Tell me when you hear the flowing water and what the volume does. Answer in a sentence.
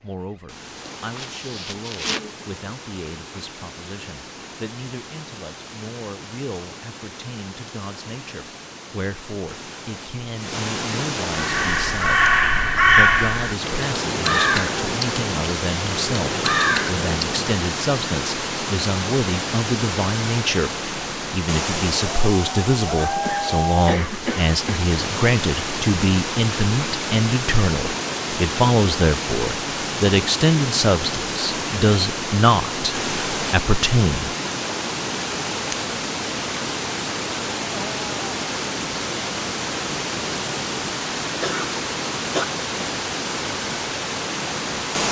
The flowing water can be heard from 0.0 to 45.0 s, getting louder.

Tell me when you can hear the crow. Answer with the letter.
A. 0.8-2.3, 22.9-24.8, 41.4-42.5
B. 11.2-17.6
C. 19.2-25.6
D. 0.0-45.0
B.